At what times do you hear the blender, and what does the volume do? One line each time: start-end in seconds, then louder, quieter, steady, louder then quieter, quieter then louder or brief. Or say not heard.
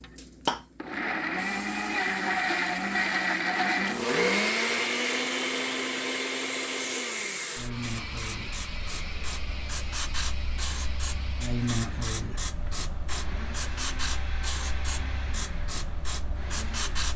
0.0-17.1 quieter.